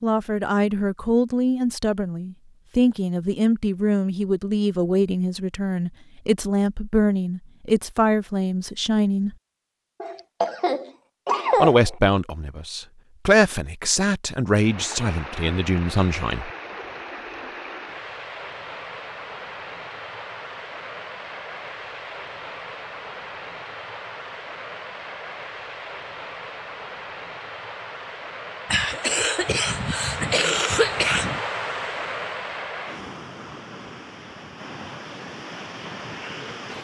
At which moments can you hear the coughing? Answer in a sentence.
The coughing can be heard from 10.0 to 11.9 s and from 28.6 to 31.4 s.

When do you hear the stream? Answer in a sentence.
The stream can be heard from 14.6 to 36.7 s.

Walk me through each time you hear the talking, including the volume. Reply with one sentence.
You can hear the talking from 0.0 to 9.3 s, at a steady volume; and from 11.6 to 16.5 s, getting louder then quieter.